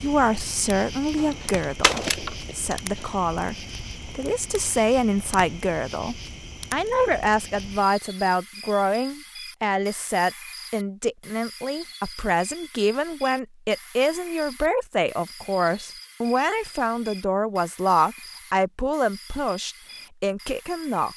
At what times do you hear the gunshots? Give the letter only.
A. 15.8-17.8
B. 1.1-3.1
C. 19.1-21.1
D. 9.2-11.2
B.